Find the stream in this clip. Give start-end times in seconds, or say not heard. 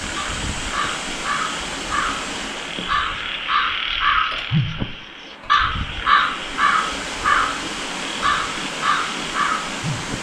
0.0-10.1.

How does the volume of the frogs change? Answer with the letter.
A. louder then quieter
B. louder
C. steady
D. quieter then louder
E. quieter
A.